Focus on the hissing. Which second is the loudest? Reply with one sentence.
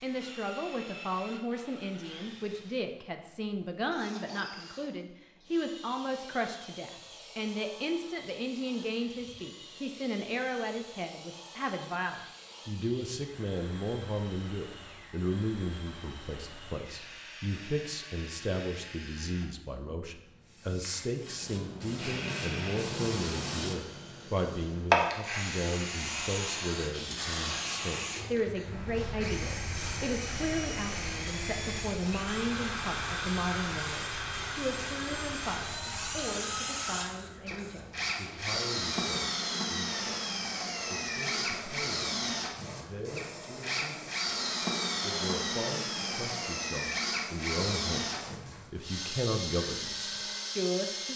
The loudest moment of the hissing is at 25 seconds.